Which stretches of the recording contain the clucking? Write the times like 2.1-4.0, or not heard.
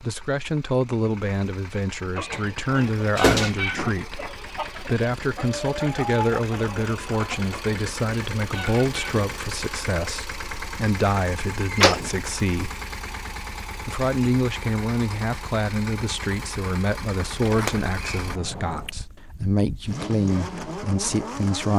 2.1-9.4.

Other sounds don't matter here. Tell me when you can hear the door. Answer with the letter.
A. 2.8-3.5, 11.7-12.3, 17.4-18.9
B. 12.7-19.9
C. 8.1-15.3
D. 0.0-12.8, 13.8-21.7
A.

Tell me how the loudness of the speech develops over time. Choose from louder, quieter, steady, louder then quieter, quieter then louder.
steady.